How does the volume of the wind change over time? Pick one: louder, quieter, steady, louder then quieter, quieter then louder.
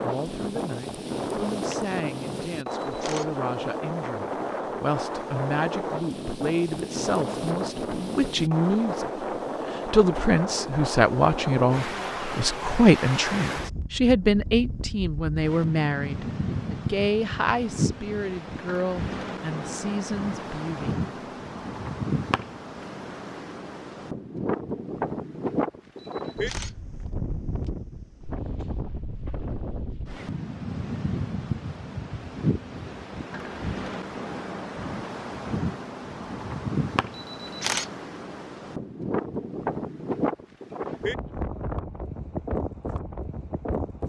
steady.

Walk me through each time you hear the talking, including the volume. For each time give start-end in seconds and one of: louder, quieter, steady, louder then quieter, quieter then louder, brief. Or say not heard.
0.0-20.9 louder then quieter.